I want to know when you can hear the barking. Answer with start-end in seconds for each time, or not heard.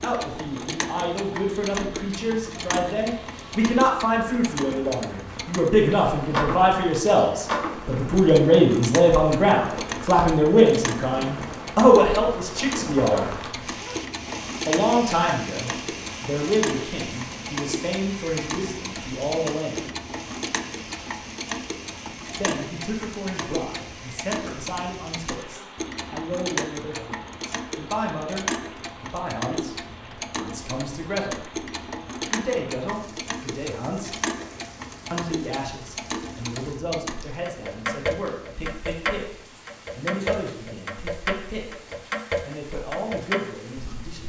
12.9-14.0.